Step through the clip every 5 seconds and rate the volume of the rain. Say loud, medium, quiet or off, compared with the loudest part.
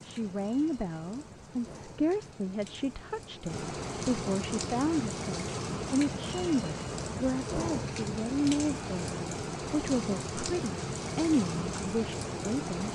medium, loud, loud.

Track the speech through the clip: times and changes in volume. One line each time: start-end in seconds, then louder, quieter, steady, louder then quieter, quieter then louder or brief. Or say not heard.
0.1-12.9 steady.